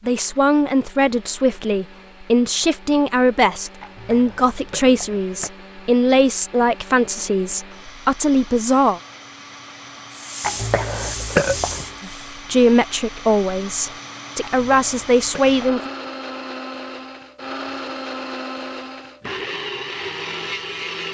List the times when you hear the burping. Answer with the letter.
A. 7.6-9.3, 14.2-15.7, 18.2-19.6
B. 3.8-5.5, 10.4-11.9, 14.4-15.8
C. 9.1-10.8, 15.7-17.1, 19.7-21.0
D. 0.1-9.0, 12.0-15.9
B.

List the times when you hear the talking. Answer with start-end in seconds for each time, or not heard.
0.1-9.0, 12.0-15.9.